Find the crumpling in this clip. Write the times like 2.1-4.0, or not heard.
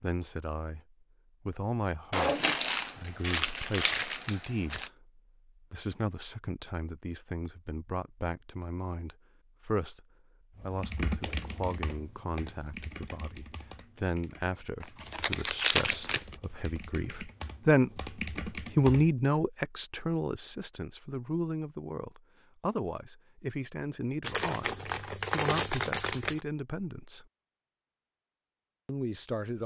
2.1-4.9, 14.8-16.4, 24.2-26.4.